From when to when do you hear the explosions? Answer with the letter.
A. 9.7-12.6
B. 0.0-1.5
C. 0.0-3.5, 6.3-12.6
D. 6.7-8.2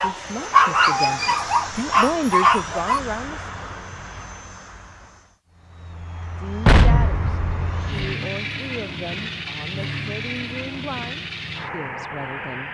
D.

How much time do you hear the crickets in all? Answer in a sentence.
You can't hear the crickets here.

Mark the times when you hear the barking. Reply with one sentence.
You can hear the barking from 0.0 to 3.0 s.